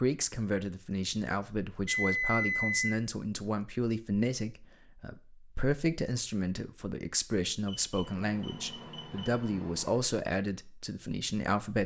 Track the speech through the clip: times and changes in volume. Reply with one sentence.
The speech can be heard from 0.0 to 11.8 s, at a steady volume.